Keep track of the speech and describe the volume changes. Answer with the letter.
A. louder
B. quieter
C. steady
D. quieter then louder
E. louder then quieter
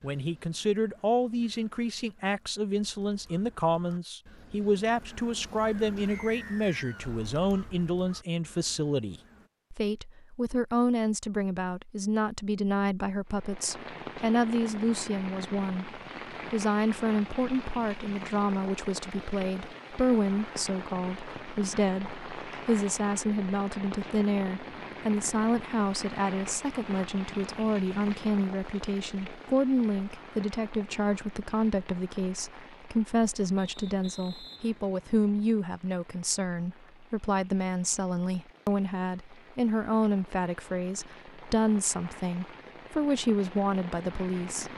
C.